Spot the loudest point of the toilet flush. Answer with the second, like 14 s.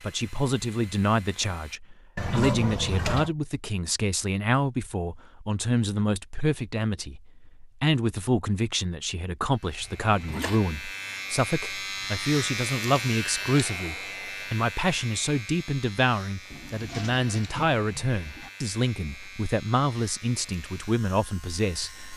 3 s.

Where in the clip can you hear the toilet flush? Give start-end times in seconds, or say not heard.
2.1-3.4, 9.8-10.6, 16.5-18.5.